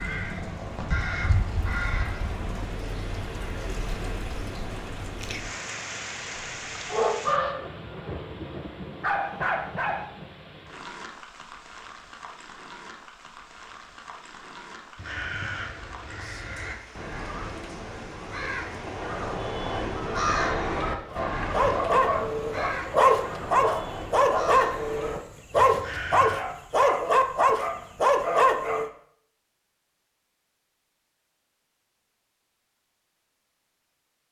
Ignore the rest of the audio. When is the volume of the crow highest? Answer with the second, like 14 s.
20 s.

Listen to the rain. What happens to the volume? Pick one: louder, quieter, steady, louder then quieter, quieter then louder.
quieter.